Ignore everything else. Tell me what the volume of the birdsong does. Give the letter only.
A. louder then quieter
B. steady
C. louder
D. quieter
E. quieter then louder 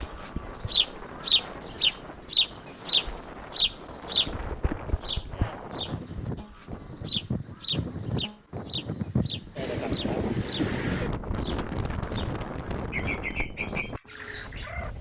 D.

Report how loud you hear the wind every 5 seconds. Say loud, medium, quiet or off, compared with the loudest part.
medium, loud, loud.